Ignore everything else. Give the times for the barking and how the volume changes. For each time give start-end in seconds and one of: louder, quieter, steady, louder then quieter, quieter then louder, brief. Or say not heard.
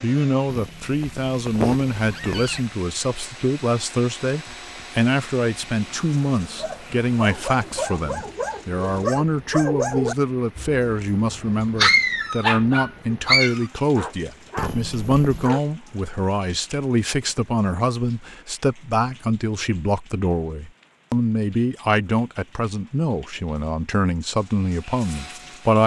6.5-15.7 louder then quieter.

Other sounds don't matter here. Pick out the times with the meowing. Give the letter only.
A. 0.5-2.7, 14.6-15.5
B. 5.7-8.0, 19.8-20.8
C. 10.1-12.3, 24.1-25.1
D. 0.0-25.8
A.